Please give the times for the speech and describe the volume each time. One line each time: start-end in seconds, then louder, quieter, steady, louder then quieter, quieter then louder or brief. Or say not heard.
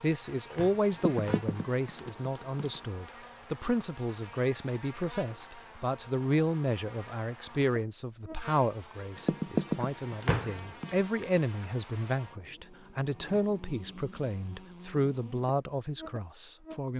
0.0-16.9 steady.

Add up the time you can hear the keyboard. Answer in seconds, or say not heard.
4 s.